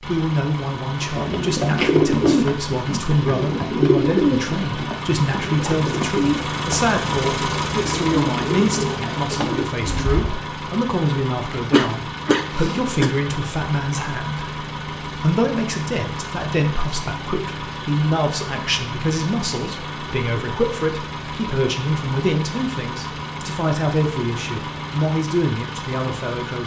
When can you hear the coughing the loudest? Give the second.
12 s.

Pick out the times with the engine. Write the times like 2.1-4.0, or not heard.
0.0-26.6.